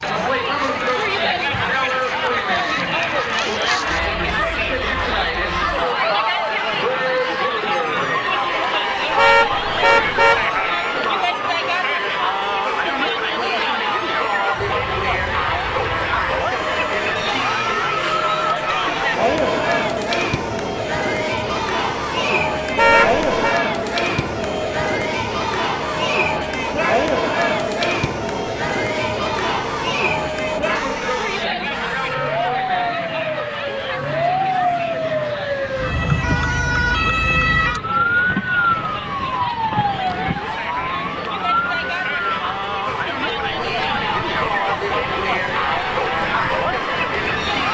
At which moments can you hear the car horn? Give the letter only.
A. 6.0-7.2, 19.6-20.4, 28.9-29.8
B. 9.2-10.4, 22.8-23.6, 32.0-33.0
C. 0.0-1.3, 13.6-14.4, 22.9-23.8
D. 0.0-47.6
B.